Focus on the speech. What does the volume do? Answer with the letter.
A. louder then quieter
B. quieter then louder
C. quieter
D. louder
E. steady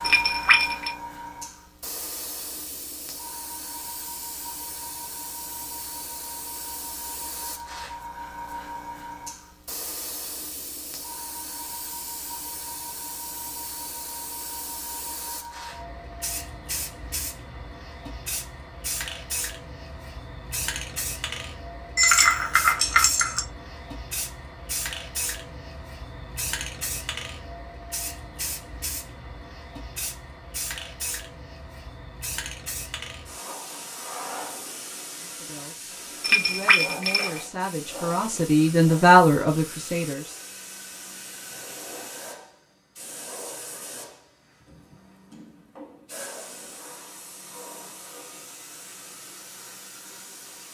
D.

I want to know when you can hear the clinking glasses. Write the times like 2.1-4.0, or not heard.
0.0-0.9, 21.9-23.4, 36.2-37.4.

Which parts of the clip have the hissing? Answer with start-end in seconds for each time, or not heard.
0.0-50.7.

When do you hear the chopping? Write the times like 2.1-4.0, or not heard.
not heard.